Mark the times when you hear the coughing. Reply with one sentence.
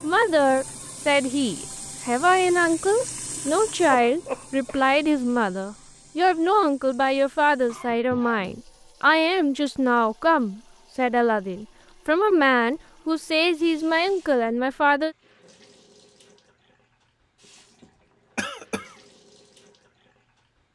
The coughing can be heard from 4.0 to 4.8 s, from 7.7 to 8.6 s and from 18.4 to 18.9 s.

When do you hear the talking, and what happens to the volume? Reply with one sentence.
The talking can be heard from 0.0 to 15.2 s, at a steady volume.